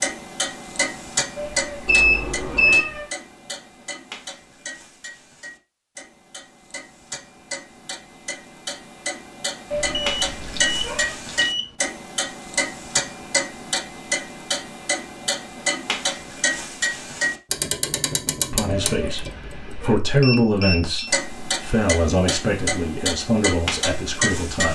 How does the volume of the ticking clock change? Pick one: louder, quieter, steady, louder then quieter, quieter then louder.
quieter then louder.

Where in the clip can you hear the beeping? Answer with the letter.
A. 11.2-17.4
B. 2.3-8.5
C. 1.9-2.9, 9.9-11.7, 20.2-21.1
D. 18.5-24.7
C.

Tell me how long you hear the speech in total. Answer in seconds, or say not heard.
6 s.